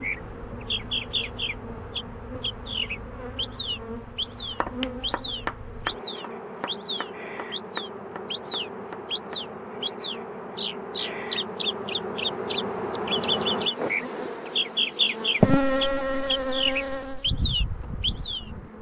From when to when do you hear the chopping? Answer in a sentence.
You can hear the chopping from 4.2 to 9.4 s.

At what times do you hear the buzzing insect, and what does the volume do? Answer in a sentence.
The buzzing insect can be heard from 0.0 to 18.7 s, getting louder.